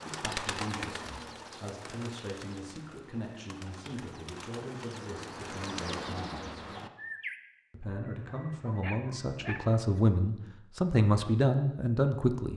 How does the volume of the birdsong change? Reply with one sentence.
The volume of the birdsong goes down, then up.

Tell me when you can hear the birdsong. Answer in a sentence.
The birdsong can be heard from 0.0 to 7.3 s.